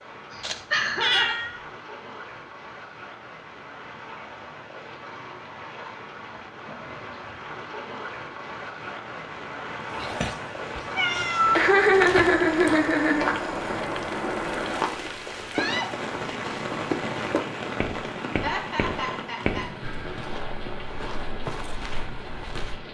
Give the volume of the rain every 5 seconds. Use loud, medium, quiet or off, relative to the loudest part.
medium, medium, loud, loud, medium.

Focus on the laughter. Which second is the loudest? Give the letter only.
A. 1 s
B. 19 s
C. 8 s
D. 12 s
D.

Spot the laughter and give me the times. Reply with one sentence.
You can hear the laughter from 0.3 to 1.4 s, from 11.6 to 13.3 s and from 18.4 to 19.6 s.